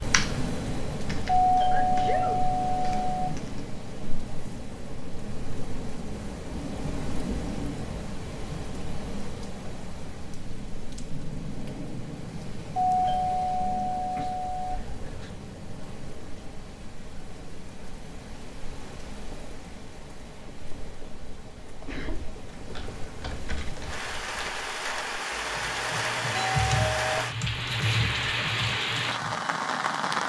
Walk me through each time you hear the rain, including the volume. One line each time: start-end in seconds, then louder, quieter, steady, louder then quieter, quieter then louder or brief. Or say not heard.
0.0-30.2 quieter then louder.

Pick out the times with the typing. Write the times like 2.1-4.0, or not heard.
0.0-3.7, 22.6-29.4.